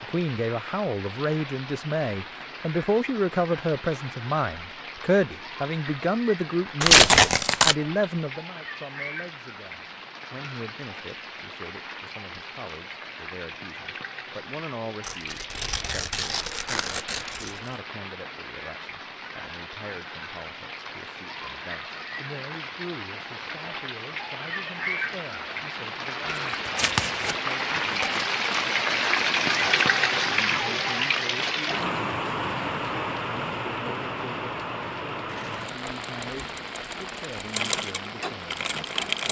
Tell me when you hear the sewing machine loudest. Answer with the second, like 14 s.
39 s.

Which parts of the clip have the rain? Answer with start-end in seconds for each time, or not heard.
0.0-39.2.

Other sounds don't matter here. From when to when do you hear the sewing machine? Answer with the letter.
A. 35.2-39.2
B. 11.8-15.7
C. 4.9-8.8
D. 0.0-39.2
A.